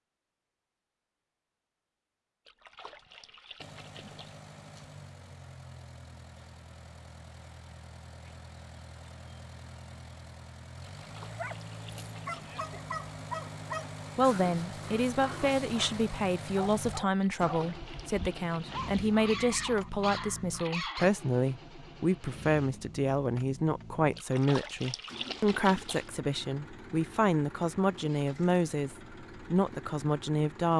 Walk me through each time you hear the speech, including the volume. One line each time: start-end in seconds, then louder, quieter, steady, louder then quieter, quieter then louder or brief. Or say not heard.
14.2-30.7 steady.